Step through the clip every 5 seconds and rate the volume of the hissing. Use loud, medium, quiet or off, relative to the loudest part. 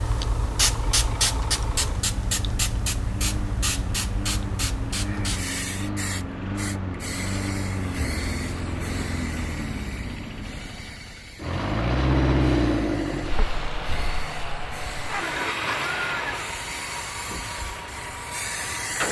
loud, medium, quiet, medium.